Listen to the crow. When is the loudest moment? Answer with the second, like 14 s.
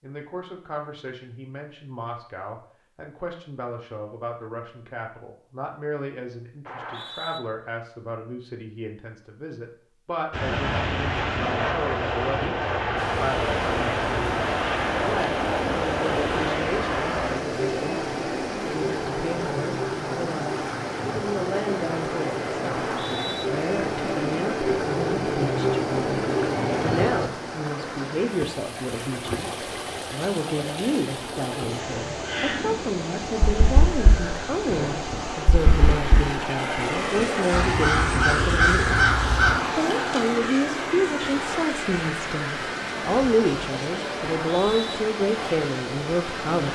39 s.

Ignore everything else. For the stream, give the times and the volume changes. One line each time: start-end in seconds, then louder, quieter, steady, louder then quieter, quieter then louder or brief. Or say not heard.
12.9-46.7 steady.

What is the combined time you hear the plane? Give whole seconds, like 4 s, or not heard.
29 s.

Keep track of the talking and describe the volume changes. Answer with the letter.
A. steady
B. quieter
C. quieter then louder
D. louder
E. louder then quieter
D.